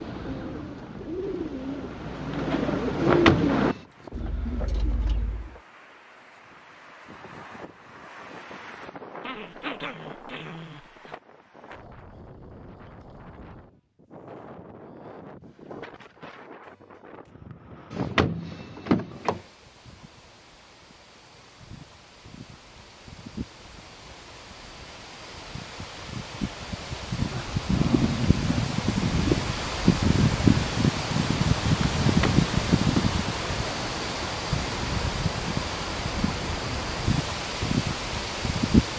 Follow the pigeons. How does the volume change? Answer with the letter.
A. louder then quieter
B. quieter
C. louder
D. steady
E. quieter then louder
A.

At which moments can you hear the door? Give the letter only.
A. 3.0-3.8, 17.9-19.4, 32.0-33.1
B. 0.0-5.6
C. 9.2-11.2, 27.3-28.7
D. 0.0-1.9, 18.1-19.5
A.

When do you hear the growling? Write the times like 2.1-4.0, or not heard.
9.2-11.2, 27.3-28.7.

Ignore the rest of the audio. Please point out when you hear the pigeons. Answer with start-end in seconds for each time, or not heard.
0.0-5.6.